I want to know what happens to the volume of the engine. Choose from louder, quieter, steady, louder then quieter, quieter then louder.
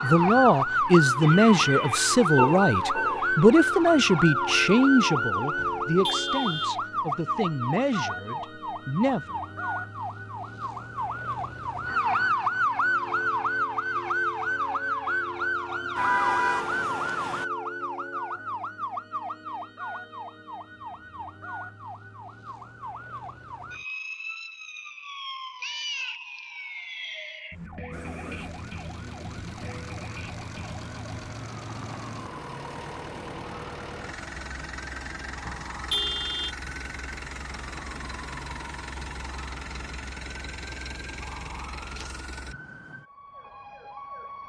steady.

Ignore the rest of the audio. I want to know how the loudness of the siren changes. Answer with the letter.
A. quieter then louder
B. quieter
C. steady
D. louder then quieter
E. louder
B.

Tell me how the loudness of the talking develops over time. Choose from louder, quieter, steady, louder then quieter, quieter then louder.
quieter.